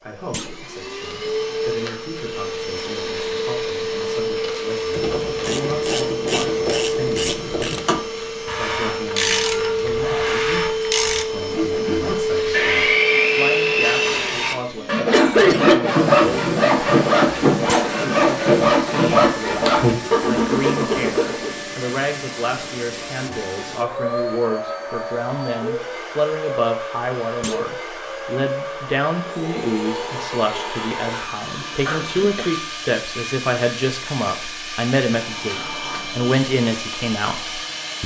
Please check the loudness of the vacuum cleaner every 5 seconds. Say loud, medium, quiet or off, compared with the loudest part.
loud, loud, loud, medium, medium, medium, medium, medium.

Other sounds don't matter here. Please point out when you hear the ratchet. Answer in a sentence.
The ratchet can be heard from 4.9 to 11.2 s.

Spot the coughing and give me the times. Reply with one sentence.
The coughing can be heard from 15.1 to 15.9 s and from 31.9 to 32.5 s.